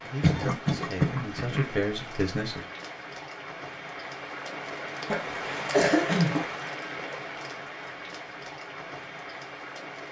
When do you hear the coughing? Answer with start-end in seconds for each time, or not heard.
0.2-1.7, 5.1-6.5.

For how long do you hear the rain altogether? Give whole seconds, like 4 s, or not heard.
10 s.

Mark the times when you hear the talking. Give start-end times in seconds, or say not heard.
0.0-2.6.